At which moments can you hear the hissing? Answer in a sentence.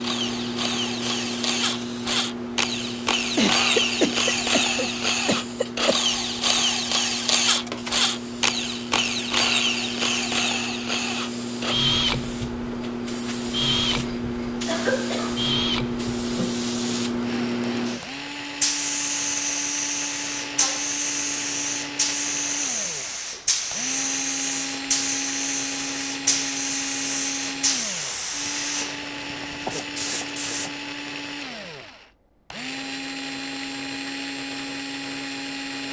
You can hear the hissing from 0.0 to 30.8 s.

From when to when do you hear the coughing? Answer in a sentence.
You can hear the coughing from 3.4 to 6.0 s, from 14.7 to 15.5 s and from 29.6 to 30.7 s.